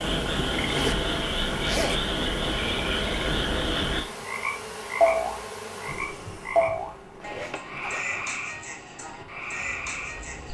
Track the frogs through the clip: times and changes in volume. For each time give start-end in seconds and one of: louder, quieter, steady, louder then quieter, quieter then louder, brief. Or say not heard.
0.0-10.4 quieter.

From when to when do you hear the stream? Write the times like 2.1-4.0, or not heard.
not heard.